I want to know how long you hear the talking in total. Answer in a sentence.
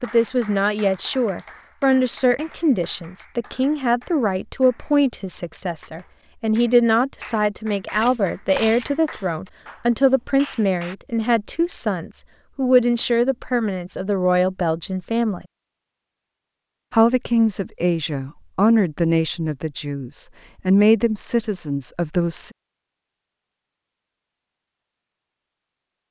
You can hear the talking for 21 seconds altogether.